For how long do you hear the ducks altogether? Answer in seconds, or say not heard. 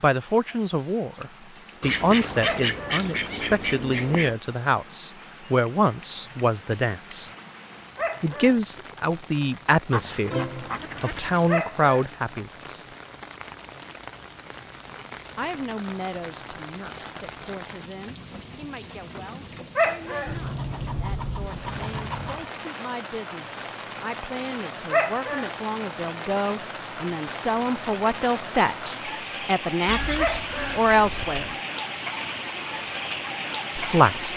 8 s.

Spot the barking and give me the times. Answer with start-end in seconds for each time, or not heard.
2.4-3.0, 8.0-8.6, 11.4-12.1, 19.8-20.4, 24.9-25.5, 30.1-30.8.